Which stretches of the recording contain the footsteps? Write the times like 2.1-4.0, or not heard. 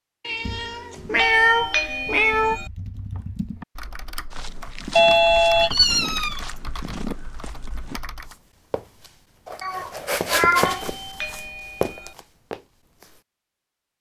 4.3-13.2.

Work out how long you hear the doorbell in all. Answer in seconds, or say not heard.
4 s.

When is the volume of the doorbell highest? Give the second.
5 s.